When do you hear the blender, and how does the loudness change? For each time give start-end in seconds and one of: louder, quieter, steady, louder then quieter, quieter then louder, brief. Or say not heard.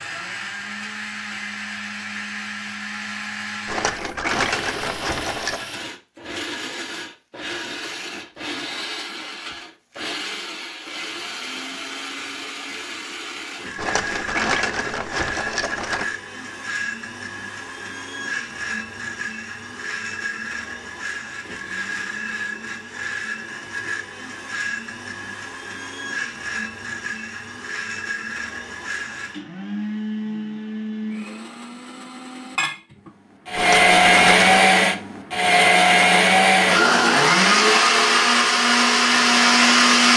0.0-40.1 louder.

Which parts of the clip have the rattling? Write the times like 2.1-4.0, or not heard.
3.6-5.7, 13.8-16.1, 33.5-34.7.